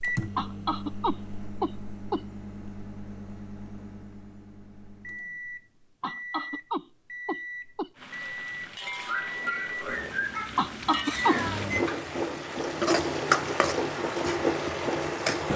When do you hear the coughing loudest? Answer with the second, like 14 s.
11 s.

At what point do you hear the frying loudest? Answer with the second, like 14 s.
13 s.